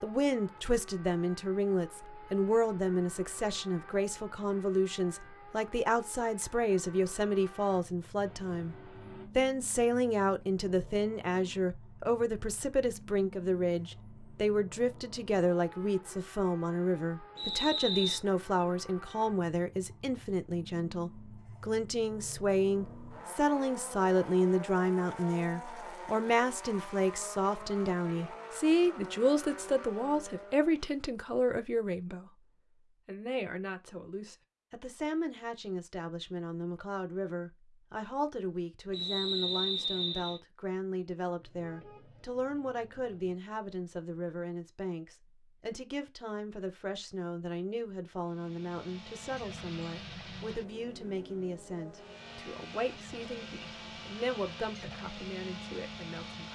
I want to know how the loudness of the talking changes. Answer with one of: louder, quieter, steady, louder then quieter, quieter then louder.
quieter.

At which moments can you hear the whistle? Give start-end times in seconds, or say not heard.
17.4-18.2, 38.9-40.4.